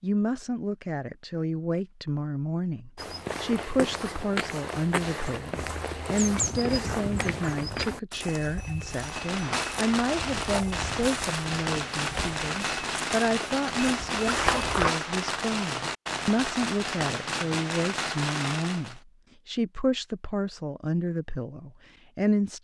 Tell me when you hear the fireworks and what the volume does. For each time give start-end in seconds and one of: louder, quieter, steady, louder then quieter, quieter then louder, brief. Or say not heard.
8.9-19.0 steady.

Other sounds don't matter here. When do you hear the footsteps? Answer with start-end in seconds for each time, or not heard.
3.0-14.9.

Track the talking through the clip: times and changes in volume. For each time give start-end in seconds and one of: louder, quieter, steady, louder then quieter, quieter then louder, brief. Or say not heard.
0.0-22.5 steady.